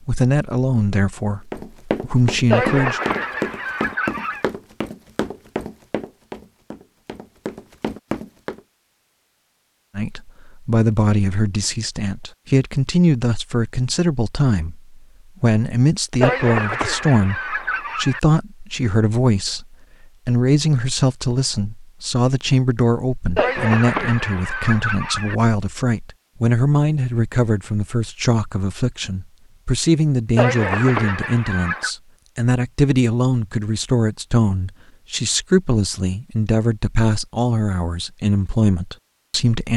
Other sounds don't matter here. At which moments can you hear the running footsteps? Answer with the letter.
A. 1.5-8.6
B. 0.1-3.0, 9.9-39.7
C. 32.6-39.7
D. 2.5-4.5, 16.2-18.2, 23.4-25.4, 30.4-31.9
A.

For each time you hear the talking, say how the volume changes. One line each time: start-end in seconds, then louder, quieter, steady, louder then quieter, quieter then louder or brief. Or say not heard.
0.1-3.0 brief
9.9-39.7 steady.